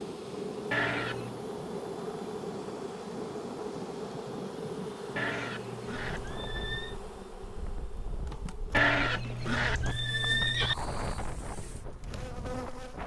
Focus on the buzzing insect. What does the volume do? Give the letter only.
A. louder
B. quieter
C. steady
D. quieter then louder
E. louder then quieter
B.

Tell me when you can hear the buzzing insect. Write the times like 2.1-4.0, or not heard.
0.0-13.0.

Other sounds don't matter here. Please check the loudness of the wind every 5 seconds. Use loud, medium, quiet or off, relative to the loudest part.
loud, medium, loud.